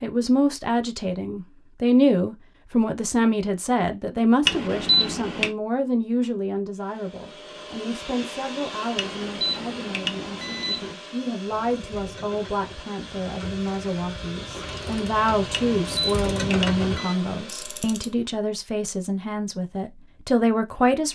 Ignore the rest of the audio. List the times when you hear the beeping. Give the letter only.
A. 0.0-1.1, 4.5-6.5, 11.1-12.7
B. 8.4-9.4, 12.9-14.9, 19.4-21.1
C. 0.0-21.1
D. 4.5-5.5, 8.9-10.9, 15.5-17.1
D.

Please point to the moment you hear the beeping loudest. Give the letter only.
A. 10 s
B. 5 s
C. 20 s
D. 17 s
B.